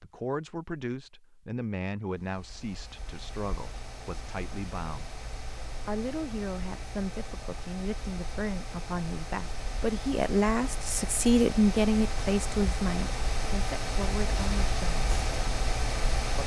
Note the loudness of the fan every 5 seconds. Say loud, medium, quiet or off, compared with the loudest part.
quiet, medium, loud, loud.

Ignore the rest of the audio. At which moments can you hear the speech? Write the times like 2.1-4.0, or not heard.
0.0-5.2, 5.8-15.2.